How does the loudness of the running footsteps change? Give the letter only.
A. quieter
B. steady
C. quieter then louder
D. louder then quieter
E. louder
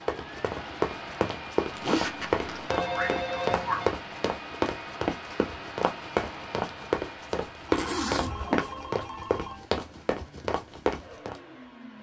B.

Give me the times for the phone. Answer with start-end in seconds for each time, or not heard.
2.6-3.9, 7.8-9.7.